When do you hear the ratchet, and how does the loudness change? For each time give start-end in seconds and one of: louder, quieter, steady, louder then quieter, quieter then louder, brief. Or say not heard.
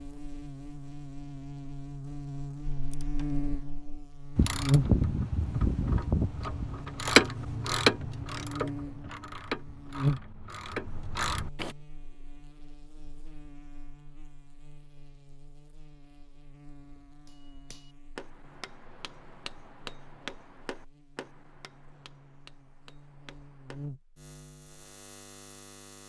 2.6-11.8 louder then quieter.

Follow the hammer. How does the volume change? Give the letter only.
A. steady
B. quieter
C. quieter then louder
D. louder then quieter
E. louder
B.